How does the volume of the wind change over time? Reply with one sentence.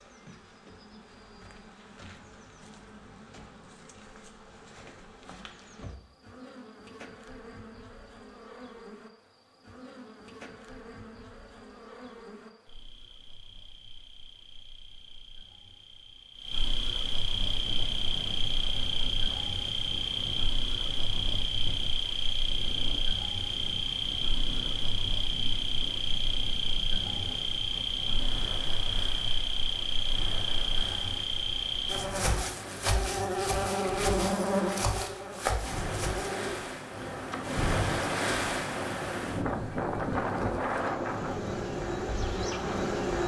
The volume of the wind goes up.